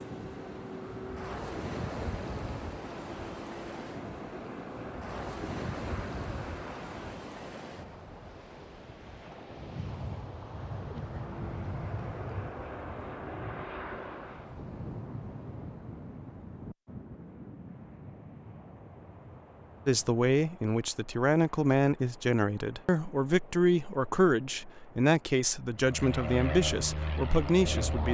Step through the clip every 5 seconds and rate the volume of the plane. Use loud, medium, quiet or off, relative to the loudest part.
medium, medium, medium, off, off, loud.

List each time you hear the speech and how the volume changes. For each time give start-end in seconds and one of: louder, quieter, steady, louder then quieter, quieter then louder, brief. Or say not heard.
19.9-28.0 steady.